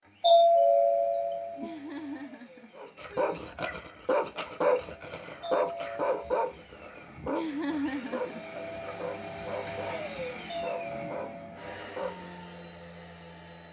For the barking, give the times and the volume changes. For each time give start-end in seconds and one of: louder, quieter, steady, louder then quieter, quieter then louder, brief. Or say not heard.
2.8-12.3 quieter.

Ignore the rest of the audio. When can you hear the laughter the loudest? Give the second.
8 s.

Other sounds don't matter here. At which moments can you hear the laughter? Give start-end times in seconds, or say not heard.
1.6-3.5, 7.2-8.4.